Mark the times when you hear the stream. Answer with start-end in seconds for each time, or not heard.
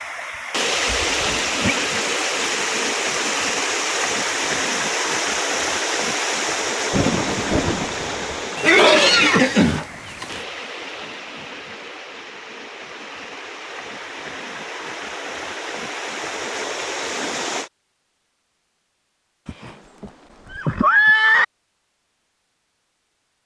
0.0-17.7.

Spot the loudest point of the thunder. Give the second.
7 s.